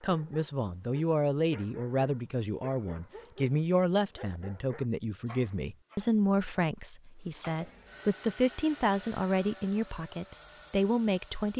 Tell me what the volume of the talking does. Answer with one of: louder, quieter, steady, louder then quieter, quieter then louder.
steady.